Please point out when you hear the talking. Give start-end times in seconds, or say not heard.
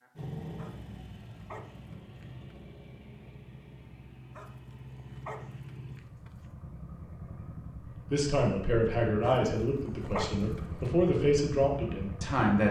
8.1-12.6.